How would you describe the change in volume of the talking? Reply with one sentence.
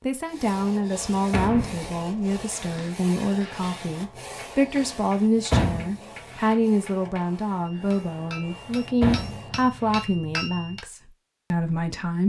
The volume of the talking stays about the same.